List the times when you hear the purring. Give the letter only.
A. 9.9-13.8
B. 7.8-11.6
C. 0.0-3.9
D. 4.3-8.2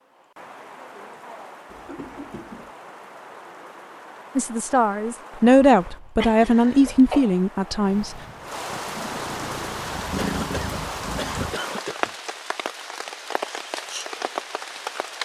B.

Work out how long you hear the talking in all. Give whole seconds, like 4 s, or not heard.
4 s.